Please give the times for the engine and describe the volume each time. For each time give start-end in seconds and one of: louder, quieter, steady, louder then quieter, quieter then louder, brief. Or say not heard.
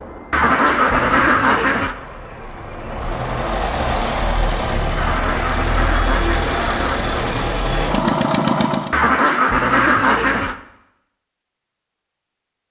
0.0-8.9 louder.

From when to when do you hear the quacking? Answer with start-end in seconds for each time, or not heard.
0.3-1.9, 5.0-7.0, 8.9-10.6.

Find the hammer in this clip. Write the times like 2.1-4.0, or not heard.
not heard.